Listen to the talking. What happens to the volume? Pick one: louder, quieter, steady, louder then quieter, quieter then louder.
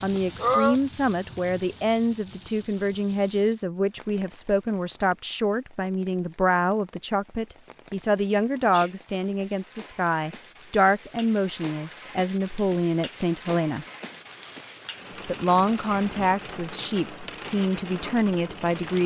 steady.